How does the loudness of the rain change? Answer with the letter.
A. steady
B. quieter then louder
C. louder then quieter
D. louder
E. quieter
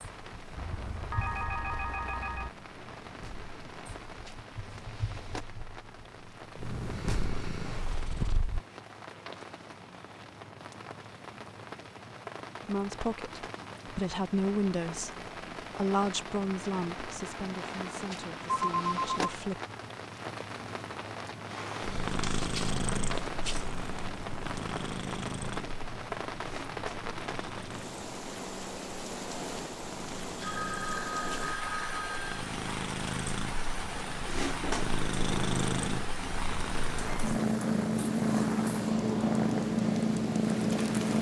D.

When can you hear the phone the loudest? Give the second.
19 s.